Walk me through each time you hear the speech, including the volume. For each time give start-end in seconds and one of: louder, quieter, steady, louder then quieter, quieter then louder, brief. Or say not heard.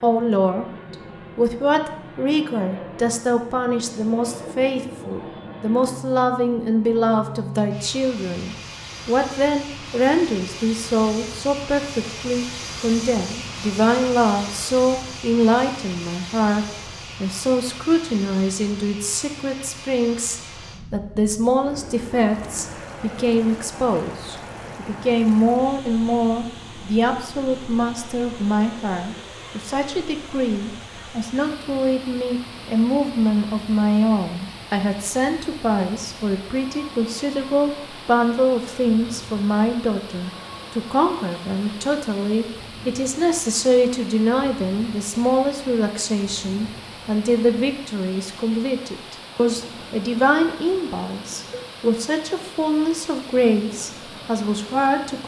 0.0-55.2 steady.